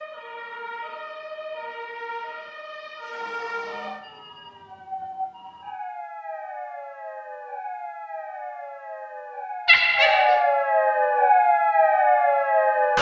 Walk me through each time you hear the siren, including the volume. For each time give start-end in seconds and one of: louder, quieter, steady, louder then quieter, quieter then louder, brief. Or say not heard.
0.0-12.9 louder.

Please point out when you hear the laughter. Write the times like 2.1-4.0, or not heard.
9.7-10.4.